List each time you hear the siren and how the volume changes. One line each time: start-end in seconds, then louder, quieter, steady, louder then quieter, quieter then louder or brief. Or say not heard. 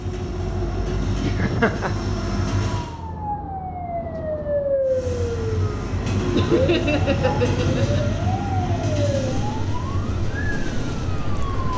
2.7-11.7 quieter.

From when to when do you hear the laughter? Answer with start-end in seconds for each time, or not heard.
1.2-1.9, 6.3-8.1.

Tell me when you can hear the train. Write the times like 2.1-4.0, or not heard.
0.0-2.9, 4.8-11.7.